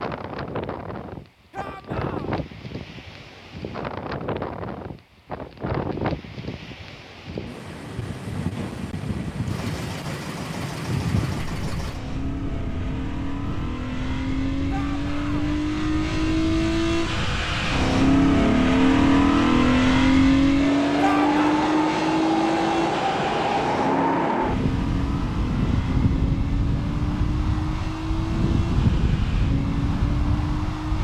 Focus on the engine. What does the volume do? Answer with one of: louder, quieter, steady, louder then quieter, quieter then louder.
louder then quieter.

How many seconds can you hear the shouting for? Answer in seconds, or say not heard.
2 s.